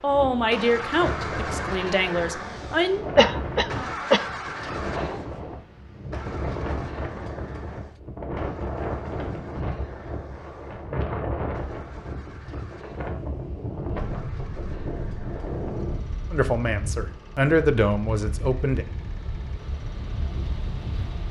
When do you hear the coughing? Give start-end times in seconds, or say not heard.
3.1-4.3.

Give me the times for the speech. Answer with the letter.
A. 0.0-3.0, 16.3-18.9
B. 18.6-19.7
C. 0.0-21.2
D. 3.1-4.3
A.